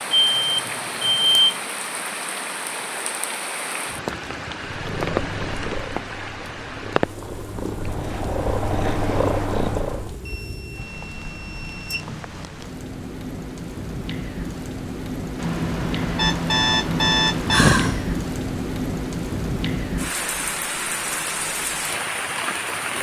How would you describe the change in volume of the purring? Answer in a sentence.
The loudness of the purring goes down, then up.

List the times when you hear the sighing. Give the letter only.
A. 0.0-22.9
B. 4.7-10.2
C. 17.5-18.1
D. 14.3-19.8
C.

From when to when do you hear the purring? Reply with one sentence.
The purring can be heard from 4.7 to 10.2 s.